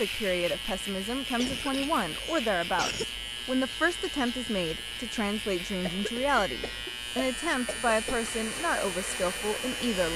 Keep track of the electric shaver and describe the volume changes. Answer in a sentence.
The loudness of the electric shaver stays about the same.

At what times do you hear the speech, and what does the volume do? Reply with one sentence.
You can hear the speech from 0.0 to 10.1 s, at a steady volume.